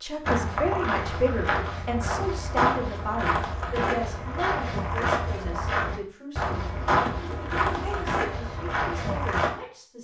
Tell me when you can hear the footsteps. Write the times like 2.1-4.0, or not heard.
0.2-9.6.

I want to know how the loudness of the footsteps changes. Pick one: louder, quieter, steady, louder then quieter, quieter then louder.
steady.